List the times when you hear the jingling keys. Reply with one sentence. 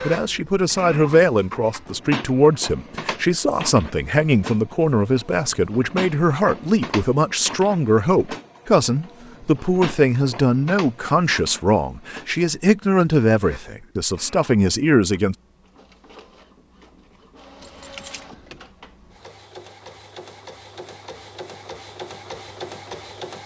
The jingling keys can be heard from 17.6 to 18.6 s.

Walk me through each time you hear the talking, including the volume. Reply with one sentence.
You can hear the talking from 0.0 to 15.3 s, at a steady volume.